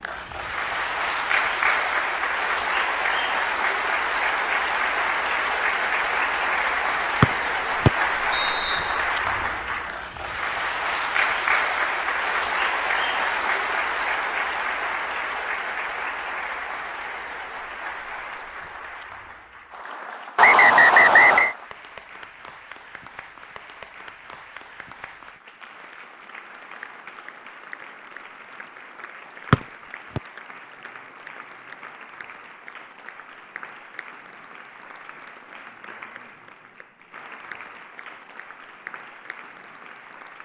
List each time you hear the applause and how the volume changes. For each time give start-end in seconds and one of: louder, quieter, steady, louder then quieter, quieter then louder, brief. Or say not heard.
0.0-40.4 quieter.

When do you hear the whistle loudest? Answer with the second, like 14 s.
21 s.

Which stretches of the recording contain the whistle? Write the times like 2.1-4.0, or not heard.
7.2-8.9, 20.4-21.6, 29.5-30.2.